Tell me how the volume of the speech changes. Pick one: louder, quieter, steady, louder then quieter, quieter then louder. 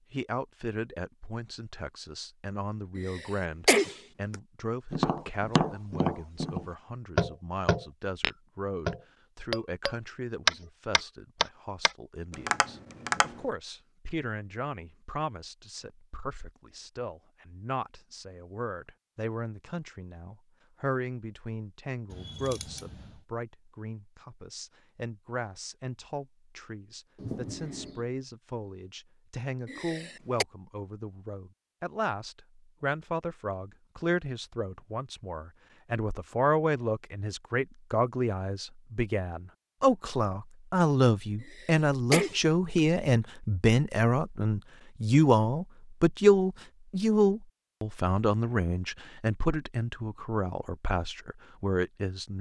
louder.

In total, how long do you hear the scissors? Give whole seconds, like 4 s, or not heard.
2 s.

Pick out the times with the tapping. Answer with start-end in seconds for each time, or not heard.
4.9-13.4.